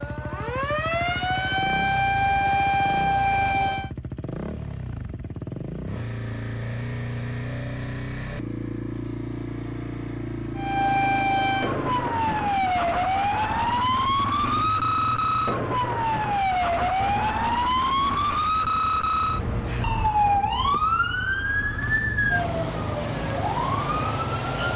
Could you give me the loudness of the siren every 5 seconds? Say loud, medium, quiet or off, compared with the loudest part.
loud, off, loud, loud, loud.